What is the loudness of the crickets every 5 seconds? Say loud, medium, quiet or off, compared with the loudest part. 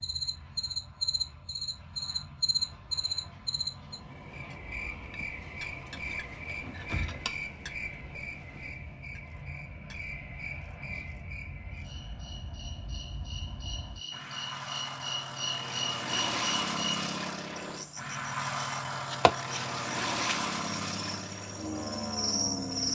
loud, medium, medium, loud, loud.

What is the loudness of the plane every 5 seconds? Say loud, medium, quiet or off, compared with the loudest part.
quiet, quiet, medium, loud, loud.